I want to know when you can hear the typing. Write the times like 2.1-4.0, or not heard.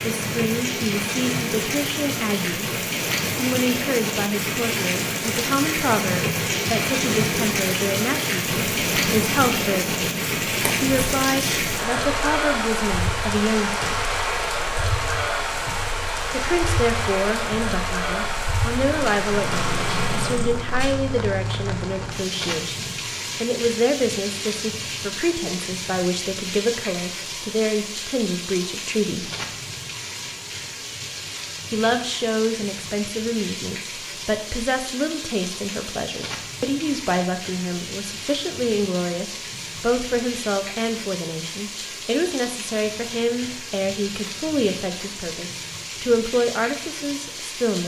not heard.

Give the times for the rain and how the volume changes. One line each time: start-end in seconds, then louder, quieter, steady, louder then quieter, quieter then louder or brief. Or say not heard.
0.0-47.8 quieter.